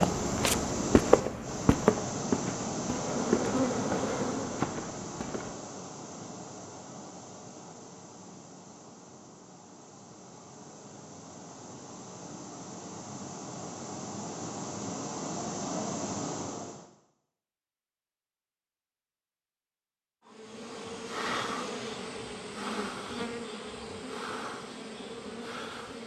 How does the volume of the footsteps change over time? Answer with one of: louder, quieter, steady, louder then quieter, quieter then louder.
quieter.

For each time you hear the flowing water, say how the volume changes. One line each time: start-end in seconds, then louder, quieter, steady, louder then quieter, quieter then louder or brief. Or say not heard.
0.0-16.9 quieter then louder.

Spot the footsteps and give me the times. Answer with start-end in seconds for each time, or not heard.
0.0-5.5.